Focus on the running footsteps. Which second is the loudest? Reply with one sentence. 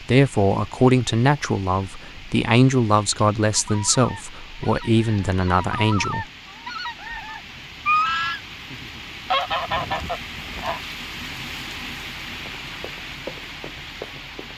The loudest moment of the running footsteps is at 13 seconds.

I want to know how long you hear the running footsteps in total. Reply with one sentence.
The running footsteps can be heard for 2 seconds in total.